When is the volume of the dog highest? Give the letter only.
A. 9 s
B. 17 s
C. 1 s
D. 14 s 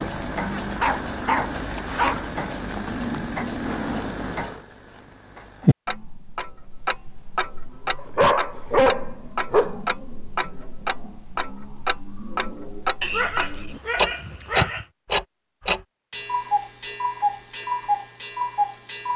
A.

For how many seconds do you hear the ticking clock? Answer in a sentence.
You can hear the ticking clock for 19 seconds altogether.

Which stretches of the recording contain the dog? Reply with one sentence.
The dog can be heard from 0.5 to 2.2 s, from 8.2 to 9.8 s and from 13.0 to 14.8 s.